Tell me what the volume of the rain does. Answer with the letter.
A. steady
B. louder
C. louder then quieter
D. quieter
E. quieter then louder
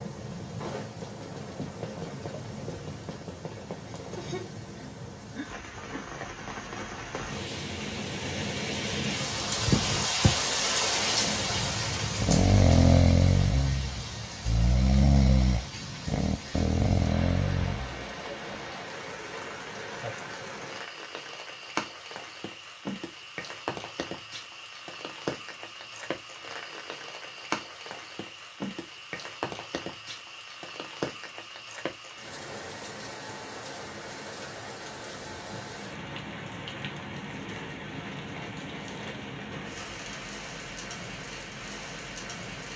C.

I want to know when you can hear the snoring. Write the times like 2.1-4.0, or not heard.
12.2-18.1.